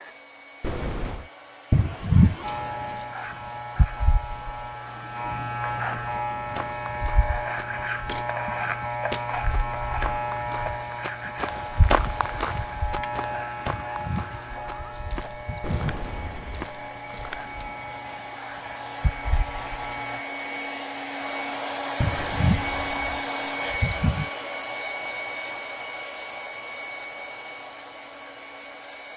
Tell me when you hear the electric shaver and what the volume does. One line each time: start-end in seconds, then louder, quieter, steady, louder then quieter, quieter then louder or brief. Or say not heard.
2.4-20.2 quieter.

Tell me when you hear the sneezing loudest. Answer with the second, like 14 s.
2 s.